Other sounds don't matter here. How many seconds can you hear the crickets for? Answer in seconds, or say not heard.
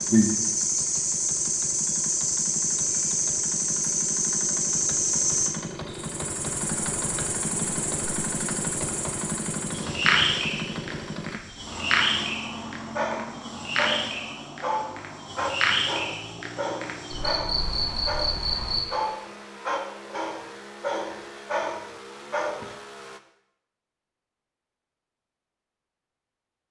19 s.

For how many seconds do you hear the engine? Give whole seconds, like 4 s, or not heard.
23 s.